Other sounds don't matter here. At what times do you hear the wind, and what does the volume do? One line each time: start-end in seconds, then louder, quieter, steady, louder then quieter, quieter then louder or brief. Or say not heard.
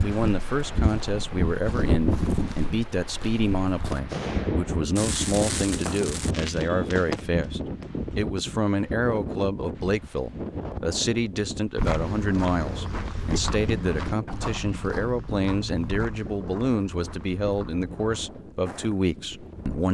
0.0-19.8 quieter.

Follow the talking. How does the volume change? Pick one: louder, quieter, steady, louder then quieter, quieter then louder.
steady.